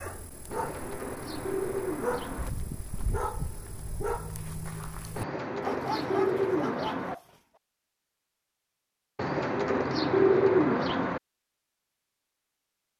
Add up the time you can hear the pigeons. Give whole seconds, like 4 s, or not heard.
6 s.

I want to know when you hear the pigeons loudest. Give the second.
10 s.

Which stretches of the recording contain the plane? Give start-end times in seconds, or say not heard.
not heard.